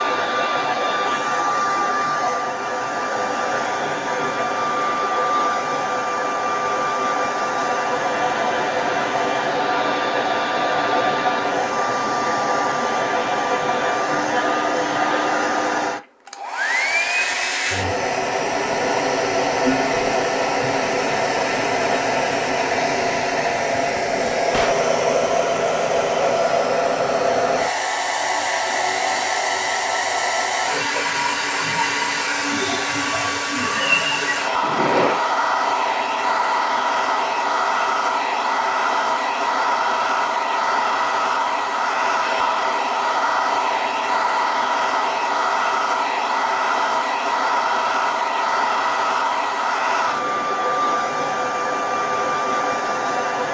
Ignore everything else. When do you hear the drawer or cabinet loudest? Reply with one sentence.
The loudest moment of the drawer or cabinet is at 35 seconds.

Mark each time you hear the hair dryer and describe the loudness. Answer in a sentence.
You can hear the hair dryer from 0.0 to 53.4 s, at a steady volume.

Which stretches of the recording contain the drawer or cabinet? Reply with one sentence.
You can hear the drawer or cabinet from 24.1 to 24.9 s and from 34.6 to 35.2 s.